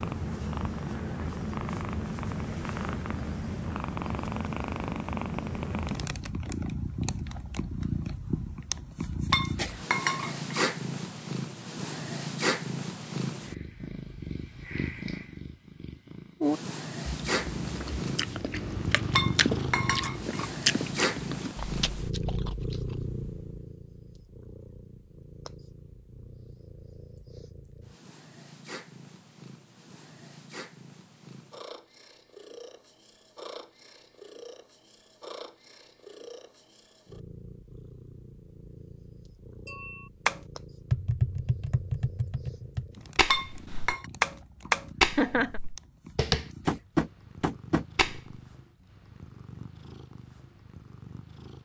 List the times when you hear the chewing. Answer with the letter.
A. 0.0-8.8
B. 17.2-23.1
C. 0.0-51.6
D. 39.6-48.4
B.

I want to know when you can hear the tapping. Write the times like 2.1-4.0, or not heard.
39.6-48.4.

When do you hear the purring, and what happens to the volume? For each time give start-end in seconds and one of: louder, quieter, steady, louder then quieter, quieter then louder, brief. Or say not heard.
0.0-51.6 quieter.